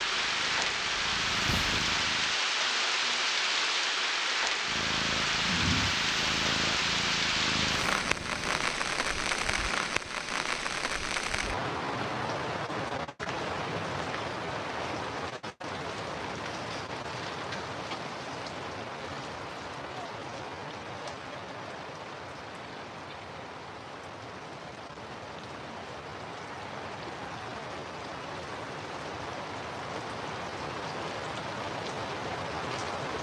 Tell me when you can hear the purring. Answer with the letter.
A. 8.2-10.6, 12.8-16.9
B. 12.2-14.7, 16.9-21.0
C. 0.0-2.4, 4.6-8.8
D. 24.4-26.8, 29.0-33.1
C.